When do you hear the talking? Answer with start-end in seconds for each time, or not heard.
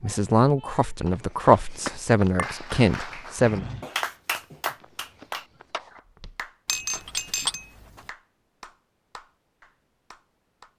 0.0-3.6.